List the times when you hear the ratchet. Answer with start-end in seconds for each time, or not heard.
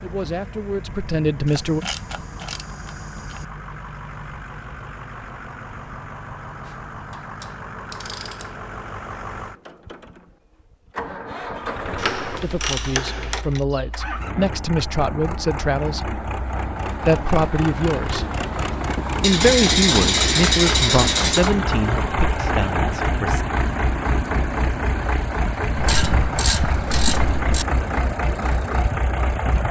1.4-3.5, 6.7-8.5, 11.9-13.6, 19.2-21.6, 25.8-27.6.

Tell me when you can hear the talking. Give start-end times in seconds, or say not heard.
0.0-1.9, 12.4-16.1, 17.1-18.2, 19.2-23.4.